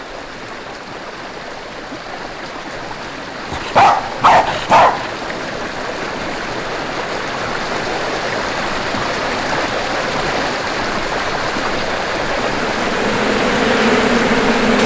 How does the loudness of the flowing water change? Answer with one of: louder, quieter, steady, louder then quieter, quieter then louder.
louder.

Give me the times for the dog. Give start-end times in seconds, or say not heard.
3.5-5.1.